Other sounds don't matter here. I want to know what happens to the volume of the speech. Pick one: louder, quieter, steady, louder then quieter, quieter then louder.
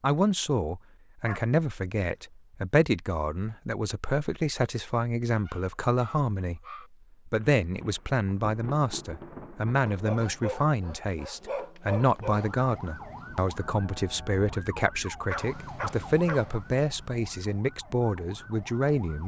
steady.